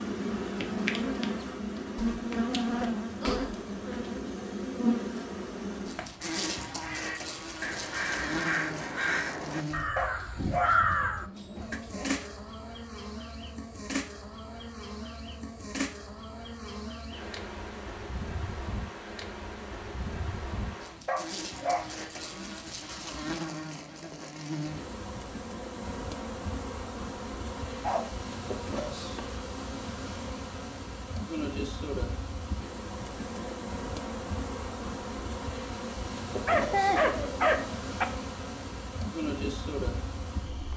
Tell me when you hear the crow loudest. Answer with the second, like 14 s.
11 s.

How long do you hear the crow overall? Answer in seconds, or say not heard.
6 s.